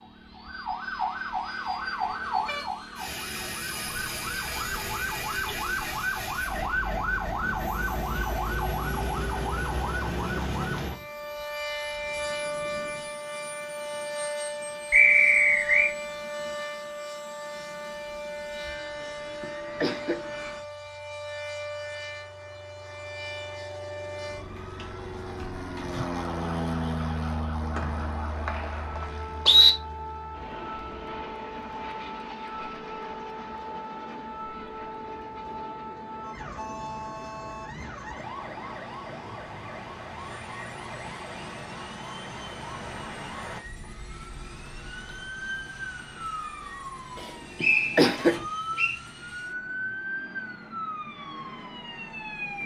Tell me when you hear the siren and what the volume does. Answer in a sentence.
You can hear the siren from 0.0 to 52.6 s, getting quieter.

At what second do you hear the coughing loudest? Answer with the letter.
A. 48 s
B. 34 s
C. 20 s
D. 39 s
A.